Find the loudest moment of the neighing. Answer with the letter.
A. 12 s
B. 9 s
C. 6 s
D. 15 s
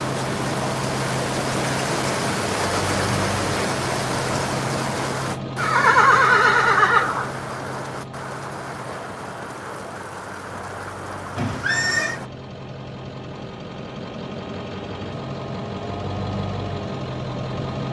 C.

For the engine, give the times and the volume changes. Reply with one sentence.
The engine can be heard from 0.0 to 17.8 s, getting quieter then louder.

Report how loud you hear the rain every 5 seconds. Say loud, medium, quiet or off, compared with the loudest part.
loud, medium, medium, off.